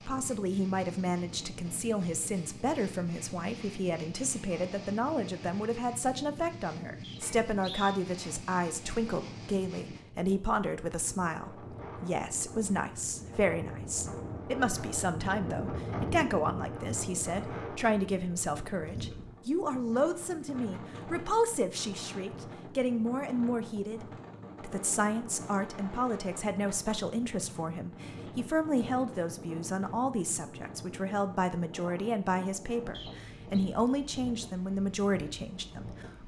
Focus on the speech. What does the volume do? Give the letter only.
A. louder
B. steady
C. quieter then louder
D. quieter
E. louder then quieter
B.